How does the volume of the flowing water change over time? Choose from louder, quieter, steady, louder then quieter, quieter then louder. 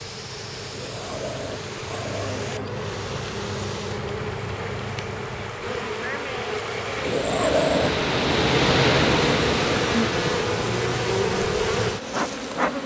louder then quieter.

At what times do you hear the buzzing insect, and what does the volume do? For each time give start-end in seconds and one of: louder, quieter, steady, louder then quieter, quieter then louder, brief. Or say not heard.
0.0-12.8 louder.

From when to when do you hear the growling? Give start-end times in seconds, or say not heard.
0.7-2.8, 7.0-8.0.